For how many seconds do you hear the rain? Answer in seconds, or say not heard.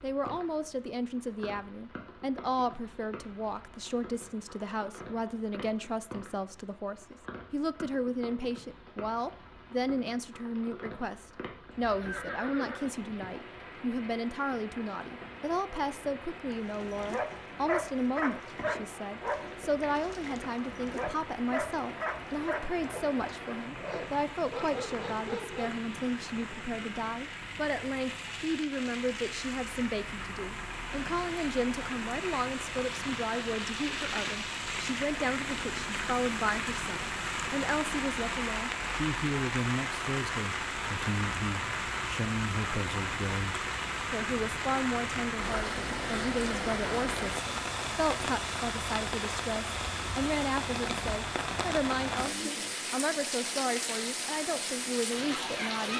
56 s.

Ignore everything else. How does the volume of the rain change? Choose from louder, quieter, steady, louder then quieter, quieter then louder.
louder.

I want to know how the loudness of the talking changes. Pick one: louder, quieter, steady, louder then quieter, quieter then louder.
steady.